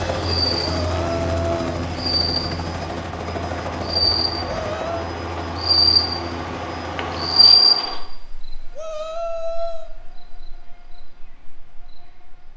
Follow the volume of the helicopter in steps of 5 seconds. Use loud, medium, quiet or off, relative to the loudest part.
loud, medium, off.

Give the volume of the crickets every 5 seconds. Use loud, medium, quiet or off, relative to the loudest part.
medium, loud, quiet.